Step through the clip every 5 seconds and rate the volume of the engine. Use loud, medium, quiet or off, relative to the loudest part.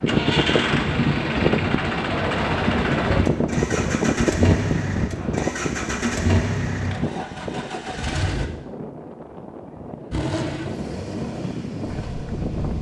loud, loud, medium.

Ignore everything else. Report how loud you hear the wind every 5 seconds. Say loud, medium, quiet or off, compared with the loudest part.
loud, medium, medium.